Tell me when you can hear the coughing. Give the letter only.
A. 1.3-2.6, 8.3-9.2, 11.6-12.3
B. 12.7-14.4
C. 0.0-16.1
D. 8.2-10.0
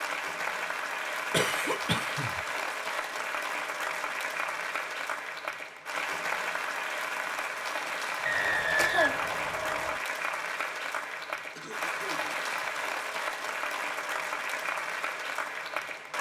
A.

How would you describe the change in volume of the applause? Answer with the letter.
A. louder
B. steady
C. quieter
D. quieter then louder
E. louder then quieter
B.